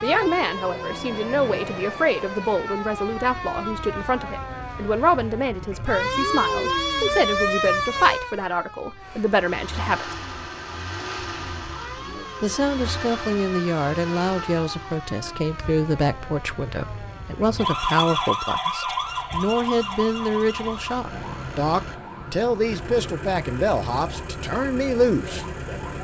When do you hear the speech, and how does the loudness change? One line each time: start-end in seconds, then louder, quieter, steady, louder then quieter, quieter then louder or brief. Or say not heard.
0.0-10.2 steady
12.4-25.4 steady.